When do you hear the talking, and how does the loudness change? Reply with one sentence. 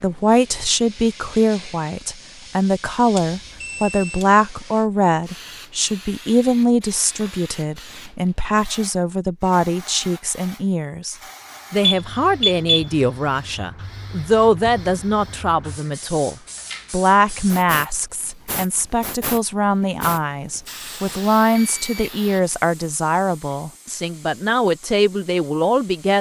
The talking can be heard from 0.0 to 26.1 s, at a steady volume.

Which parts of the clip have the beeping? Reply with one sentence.
You can hear the beeping from 3.1 to 4.2 s, from 11.8 to 12.8 s and from 21.1 to 22.1 s.